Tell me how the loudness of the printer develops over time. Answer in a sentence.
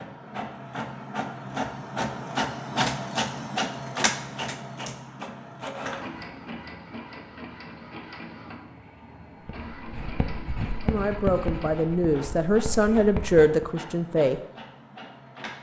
The loudness of the printer goes down.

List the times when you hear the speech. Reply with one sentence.
The speech can be heard from 10.8 to 14.4 s.